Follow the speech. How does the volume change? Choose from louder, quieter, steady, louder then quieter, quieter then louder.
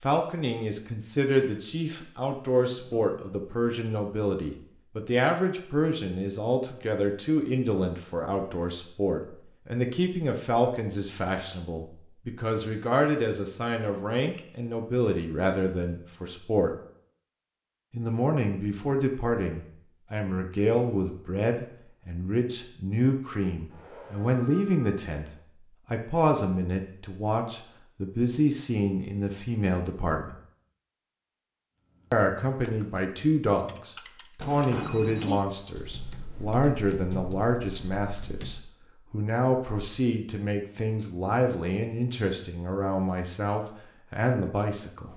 steady.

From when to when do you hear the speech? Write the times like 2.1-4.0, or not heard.
0.0-16.8, 17.9-25.3, 25.9-30.4, 32.1-45.1.